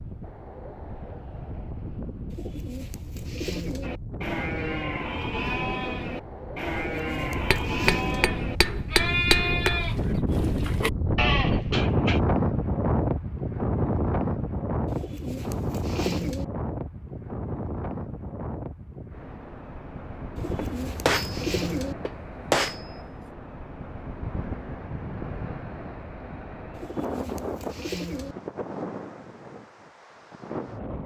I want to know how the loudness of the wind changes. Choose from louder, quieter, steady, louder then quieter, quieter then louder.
louder then quieter.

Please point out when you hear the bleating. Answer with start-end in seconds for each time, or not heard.
3.8-12.2.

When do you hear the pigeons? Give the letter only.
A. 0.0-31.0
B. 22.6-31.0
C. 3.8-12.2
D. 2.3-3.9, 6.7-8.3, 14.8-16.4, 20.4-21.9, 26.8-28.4
D.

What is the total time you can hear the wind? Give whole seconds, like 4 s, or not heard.
31 s.